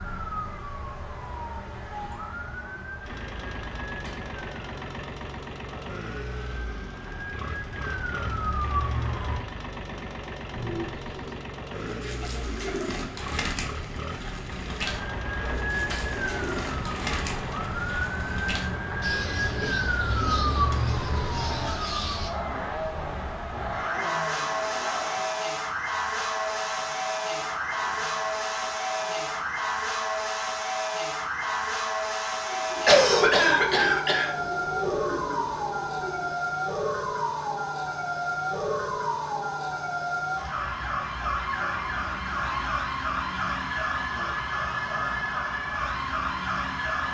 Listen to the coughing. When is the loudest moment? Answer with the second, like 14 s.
33 s.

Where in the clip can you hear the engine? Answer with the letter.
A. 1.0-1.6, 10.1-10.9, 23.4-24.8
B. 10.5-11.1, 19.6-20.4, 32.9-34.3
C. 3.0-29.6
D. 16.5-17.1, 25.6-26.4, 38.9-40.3
C.